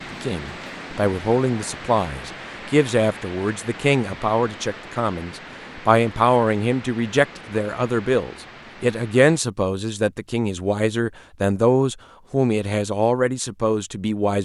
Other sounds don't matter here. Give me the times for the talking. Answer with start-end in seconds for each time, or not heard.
0.1-14.4.